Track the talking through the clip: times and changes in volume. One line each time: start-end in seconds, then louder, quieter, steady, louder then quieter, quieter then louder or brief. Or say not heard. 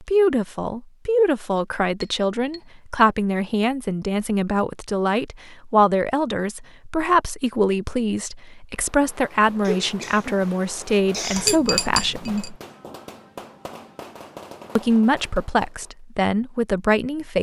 0.0-12.6 steady
14.8-17.3 brief.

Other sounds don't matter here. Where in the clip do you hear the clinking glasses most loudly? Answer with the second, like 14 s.
12 s.